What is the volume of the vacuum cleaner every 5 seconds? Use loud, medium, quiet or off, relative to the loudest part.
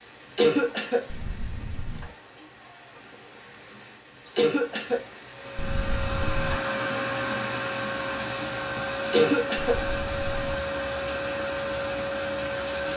off, loud, loud.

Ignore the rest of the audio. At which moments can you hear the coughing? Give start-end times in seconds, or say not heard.
0.3-1.1, 4.3-5.0, 9.1-9.8.